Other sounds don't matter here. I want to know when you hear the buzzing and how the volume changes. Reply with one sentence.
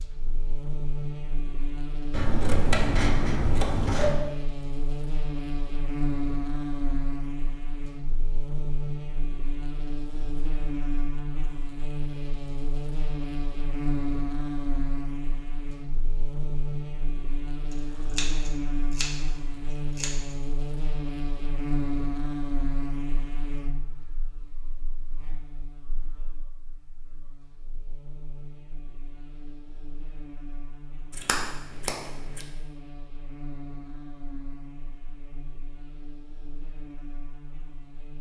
You can hear the buzzing from 0.0 to 38.1 s, getting quieter.